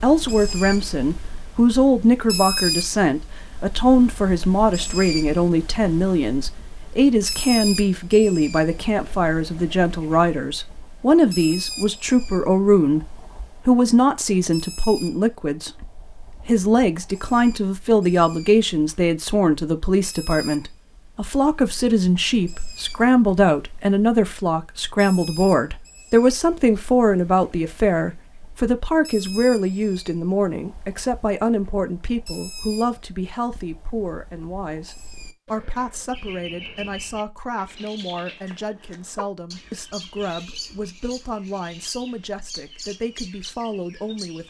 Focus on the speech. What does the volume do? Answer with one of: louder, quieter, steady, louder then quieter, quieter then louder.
quieter.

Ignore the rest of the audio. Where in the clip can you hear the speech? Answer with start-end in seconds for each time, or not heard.
0.0-44.4.